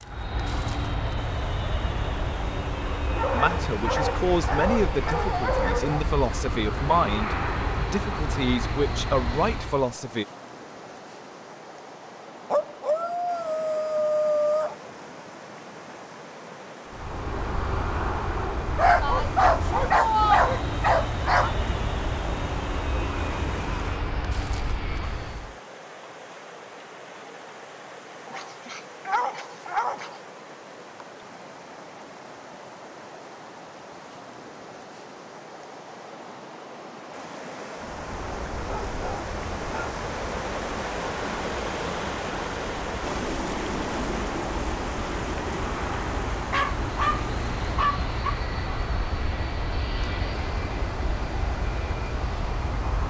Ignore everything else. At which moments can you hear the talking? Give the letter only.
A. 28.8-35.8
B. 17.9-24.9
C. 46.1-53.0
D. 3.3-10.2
D.